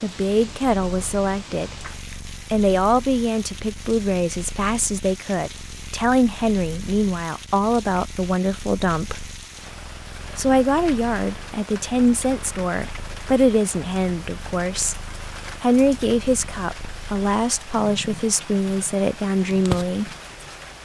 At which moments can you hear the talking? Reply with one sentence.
The talking can be heard from 0.0 to 1.8 s, from 2.5 to 9.2 s, from 10.3 to 14.9 s and from 15.6 to 20.1 s.